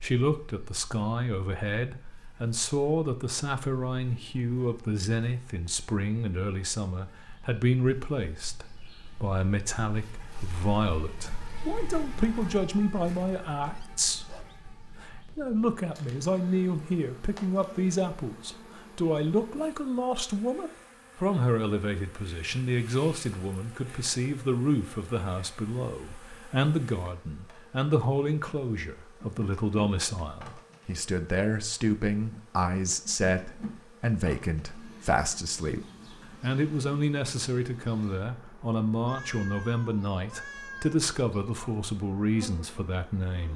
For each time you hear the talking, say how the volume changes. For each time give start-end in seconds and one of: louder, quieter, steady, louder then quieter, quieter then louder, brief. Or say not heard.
0.0-43.5 steady.